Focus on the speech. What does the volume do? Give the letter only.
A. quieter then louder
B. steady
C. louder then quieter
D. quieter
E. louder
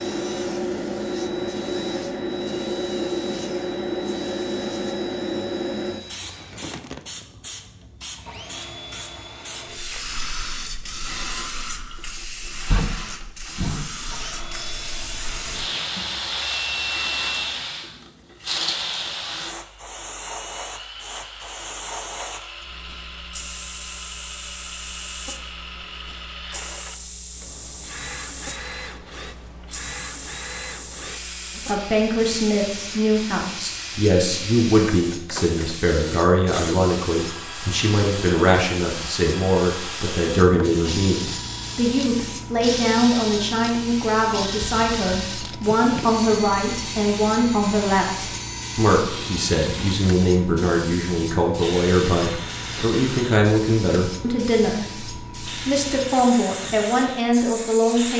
B.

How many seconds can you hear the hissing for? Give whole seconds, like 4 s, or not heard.
58 s.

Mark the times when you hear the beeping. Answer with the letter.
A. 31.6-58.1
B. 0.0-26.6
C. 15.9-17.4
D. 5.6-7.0
C.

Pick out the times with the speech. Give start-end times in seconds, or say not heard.
31.6-58.1.